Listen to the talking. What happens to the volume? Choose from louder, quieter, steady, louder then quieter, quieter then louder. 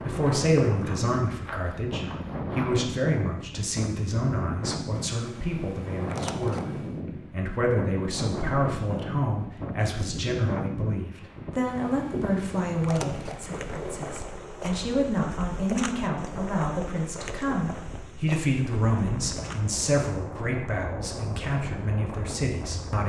steady.